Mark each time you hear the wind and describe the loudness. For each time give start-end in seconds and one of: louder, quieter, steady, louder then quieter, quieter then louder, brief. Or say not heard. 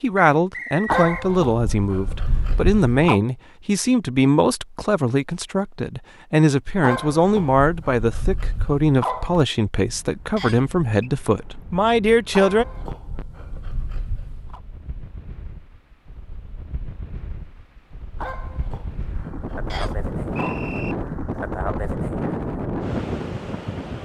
9.8-23.9 louder.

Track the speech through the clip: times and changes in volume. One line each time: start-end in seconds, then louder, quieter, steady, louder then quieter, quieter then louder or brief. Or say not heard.
0.0-12.7 steady.